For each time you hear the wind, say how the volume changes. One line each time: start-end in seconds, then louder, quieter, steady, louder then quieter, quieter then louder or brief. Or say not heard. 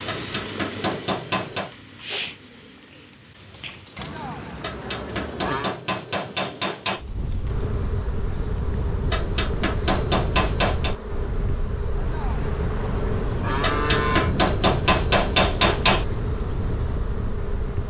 7.0-17.8 steady.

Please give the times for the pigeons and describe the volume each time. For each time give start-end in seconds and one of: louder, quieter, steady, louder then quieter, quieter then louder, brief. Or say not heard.
0.0-7.7 quieter.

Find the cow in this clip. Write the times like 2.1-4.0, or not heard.
4.0-5.8, 11.9-14.3.